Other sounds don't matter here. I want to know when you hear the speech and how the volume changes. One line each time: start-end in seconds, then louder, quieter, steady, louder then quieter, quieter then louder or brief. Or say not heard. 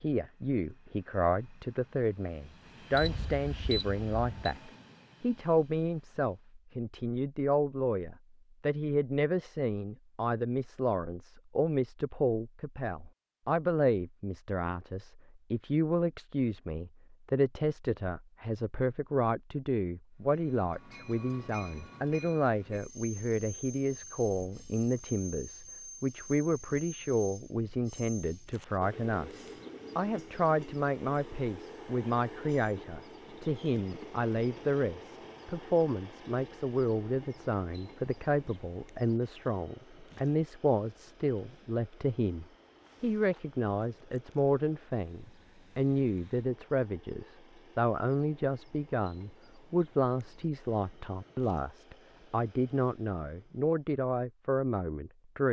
0.0-55.4 steady.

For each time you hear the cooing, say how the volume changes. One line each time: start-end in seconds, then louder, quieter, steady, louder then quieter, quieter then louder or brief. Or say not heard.
not heard.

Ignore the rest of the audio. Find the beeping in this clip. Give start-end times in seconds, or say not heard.
2.9-4.5.